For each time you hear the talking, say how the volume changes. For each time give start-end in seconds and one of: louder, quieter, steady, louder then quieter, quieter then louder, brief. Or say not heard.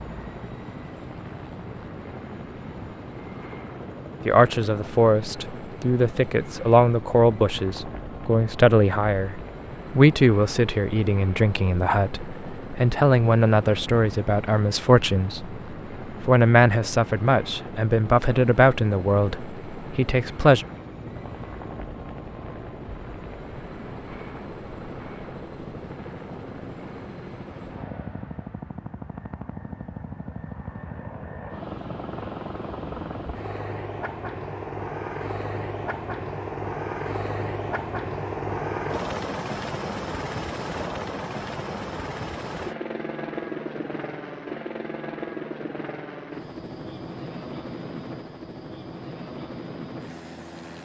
4.2-20.6 steady.